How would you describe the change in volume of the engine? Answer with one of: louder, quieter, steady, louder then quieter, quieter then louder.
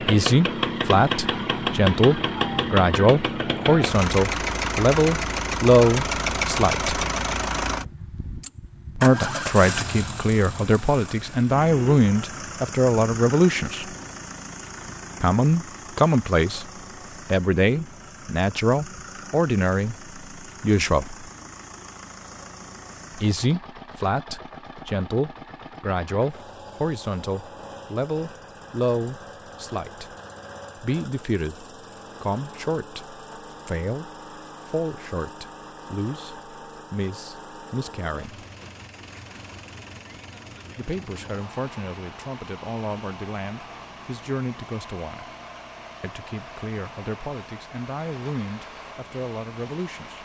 quieter.